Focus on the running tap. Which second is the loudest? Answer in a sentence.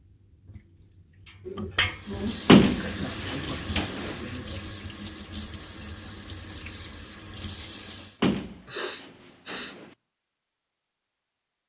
The volume of the running tap peaks at 2 seconds.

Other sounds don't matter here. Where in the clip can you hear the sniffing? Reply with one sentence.
The sniffing can be heard from 1.4 to 2.5 s and from 8.2 to 9.8 s.